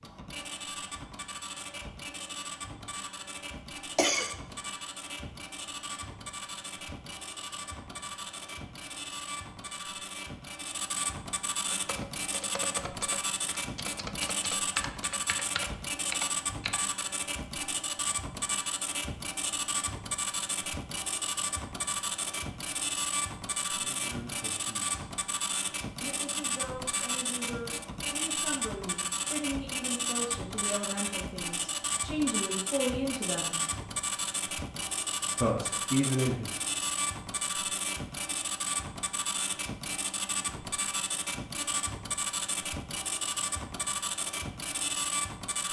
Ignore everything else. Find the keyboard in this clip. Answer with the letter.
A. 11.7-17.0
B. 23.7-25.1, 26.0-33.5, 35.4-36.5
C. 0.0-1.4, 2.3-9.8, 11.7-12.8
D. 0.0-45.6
A.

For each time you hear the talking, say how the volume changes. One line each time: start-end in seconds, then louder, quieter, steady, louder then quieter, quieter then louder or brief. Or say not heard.
23.7-25.1 brief
26.0-33.5 louder
35.4-36.5 brief.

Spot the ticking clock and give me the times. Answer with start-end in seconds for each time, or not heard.
not heard.